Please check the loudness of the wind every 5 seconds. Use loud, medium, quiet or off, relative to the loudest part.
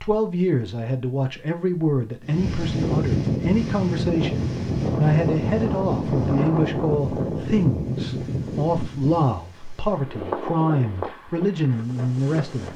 loud, loud, medium.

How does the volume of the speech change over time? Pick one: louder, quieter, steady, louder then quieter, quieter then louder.
steady.